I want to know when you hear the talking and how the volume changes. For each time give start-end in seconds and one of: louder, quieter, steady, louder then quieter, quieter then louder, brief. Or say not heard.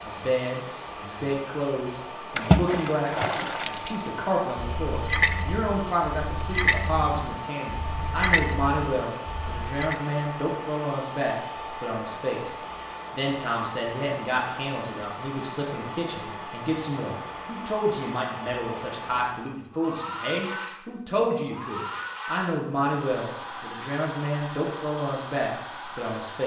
0.0-26.4 steady.